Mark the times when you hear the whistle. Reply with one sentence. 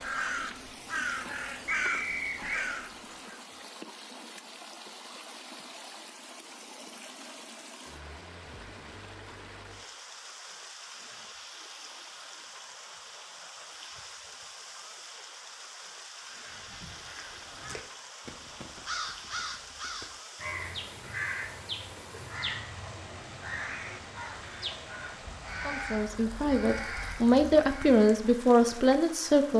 The whistle can be heard from 1.6 to 2.7 s.